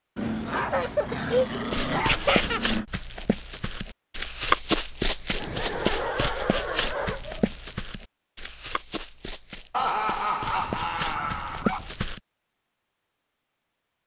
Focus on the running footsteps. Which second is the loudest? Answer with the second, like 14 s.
5 s.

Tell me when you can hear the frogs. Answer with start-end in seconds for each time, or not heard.
not heard.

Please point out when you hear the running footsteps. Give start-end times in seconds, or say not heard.
1.7-12.2.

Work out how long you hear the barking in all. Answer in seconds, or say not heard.
6 s.